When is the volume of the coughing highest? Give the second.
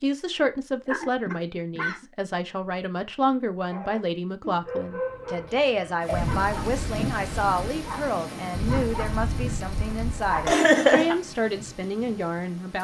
11 s.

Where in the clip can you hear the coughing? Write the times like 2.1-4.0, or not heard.
0.8-2.0, 5.5-6.3, 10.4-11.2.